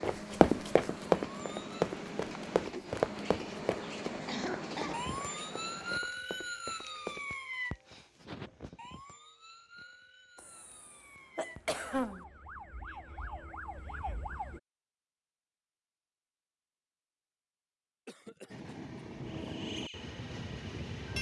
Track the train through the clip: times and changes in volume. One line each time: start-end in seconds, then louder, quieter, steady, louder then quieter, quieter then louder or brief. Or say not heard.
0.0-6.0 steady
18.4-21.1 brief.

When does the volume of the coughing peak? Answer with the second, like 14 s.
12 s.